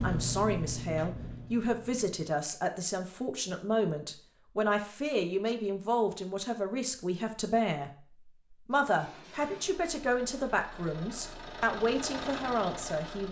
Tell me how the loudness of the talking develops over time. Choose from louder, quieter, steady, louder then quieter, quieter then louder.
steady.